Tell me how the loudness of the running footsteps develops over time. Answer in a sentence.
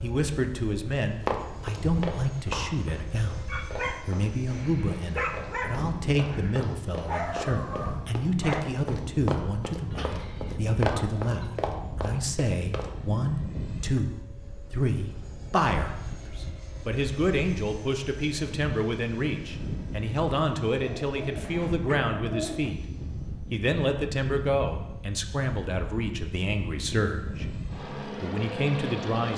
The volume of the running footsteps goes down, then up.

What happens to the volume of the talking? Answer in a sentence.
The volume of the talking stays about the same.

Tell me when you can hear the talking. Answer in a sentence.
The talking can be heard from 0.0 to 3.5 s, from 4.0 to 22.8 s and from 23.5 to 29.3 s.